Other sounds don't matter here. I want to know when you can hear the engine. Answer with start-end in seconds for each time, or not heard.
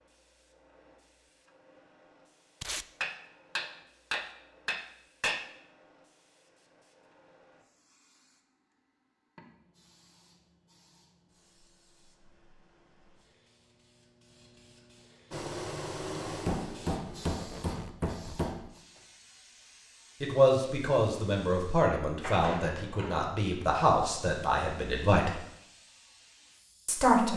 15.3-17.4.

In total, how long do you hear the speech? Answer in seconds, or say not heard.
6 s.